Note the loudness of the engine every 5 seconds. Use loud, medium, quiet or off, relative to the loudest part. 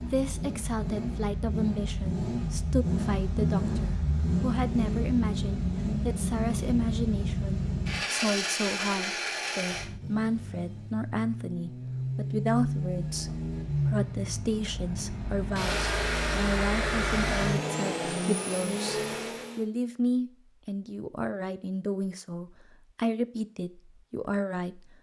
loud, loud, loud, loud, off.